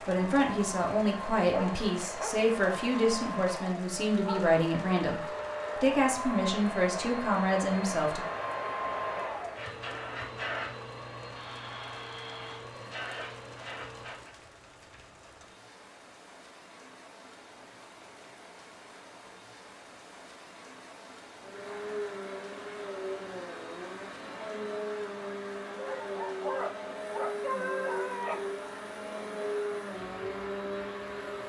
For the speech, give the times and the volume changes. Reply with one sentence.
The speech can be heard from 0.1 to 8.2 s, at a steady volume.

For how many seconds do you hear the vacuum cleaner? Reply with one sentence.
You can hear the vacuum cleaner for 24 seconds altogether.